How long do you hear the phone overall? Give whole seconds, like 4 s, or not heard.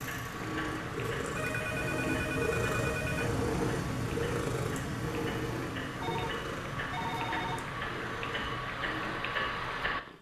4 s.